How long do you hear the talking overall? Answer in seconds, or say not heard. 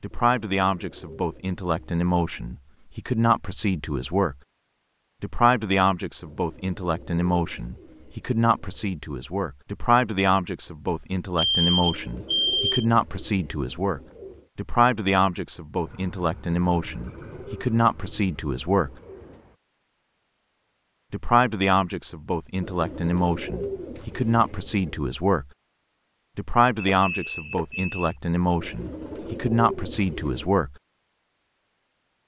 27 s.